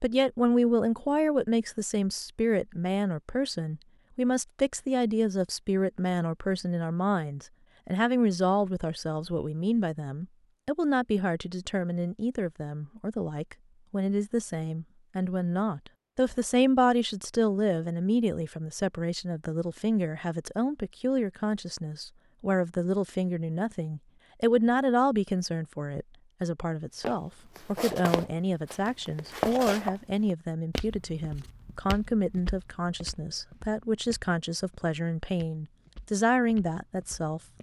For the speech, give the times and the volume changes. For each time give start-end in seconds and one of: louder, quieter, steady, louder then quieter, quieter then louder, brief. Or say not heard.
0.0-37.4 steady.